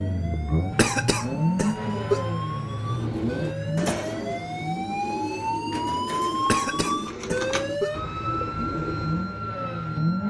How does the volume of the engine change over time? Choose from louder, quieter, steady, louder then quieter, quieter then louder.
quieter then louder.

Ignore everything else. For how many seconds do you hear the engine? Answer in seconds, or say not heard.
10 s.